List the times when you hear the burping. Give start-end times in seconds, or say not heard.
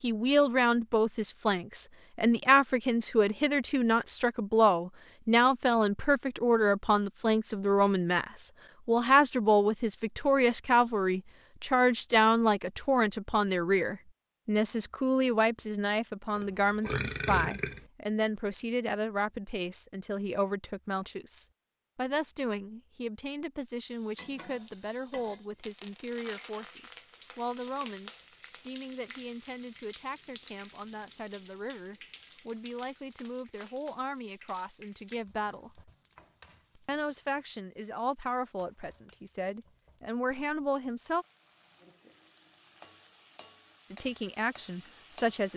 16.4-17.9.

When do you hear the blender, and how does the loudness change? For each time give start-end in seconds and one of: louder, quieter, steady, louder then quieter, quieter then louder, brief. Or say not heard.
not heard.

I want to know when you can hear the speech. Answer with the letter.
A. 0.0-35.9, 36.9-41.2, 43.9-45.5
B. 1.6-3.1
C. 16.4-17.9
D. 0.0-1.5
A.